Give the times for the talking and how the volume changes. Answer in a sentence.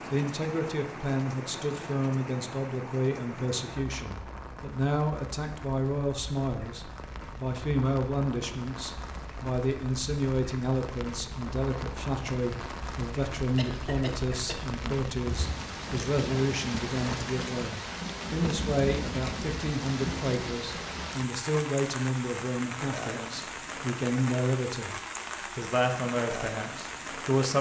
You can hear the talking from 0.1 to 27.5 s, at a steady volume.